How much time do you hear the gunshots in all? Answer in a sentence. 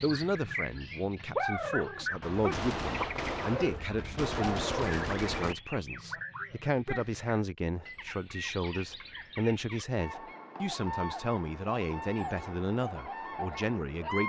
You can hear the gunshots for 3 seconds altogether.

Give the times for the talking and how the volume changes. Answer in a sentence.
The talking can be heard from 0.0 to 14.2 s, at a steady volume.